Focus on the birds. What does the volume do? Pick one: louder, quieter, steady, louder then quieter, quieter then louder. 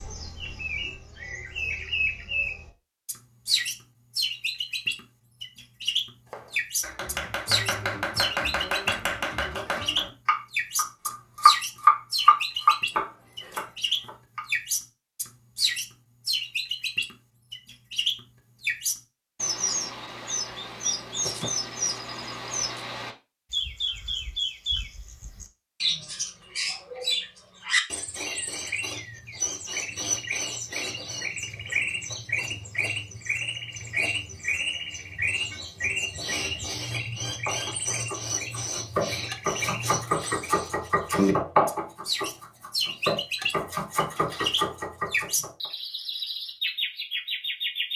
steady.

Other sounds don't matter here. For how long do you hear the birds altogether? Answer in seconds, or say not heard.
48 s.